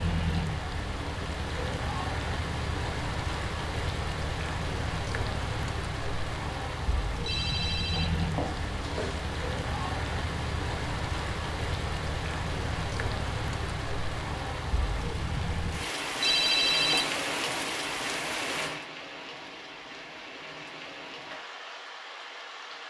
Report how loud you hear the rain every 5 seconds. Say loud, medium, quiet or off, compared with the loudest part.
loud, loud, loud, loud, medium.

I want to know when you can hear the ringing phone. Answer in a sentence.
You can hear the ringing phone from 7.2 to 9.2 s and from 16.2 to 17.1 s.